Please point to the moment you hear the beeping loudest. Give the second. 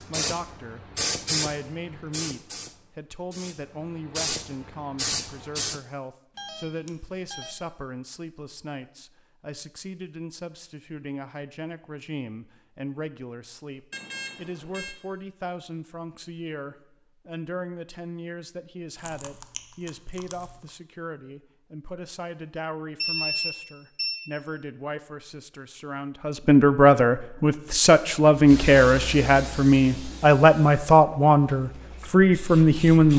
23 s.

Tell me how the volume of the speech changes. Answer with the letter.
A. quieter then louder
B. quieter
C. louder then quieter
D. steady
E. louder
E.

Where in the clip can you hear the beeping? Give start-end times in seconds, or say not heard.
6.3-7.5, 13.9-14.9, 23.0-24.2.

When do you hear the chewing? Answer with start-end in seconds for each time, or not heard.
19.0-20.6.